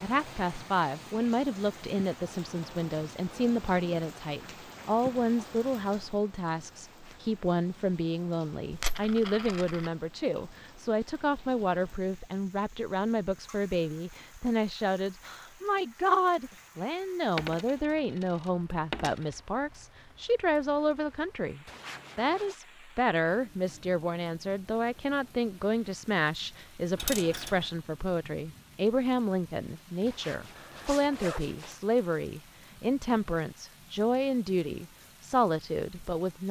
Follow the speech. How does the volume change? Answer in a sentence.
The volume of the speech stays about the same.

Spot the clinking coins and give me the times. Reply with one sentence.
The clinking coins can be heard from 8.7 to 9.9 s, from 17.4 to 19.4 s and from 26.9 to 27.7 s.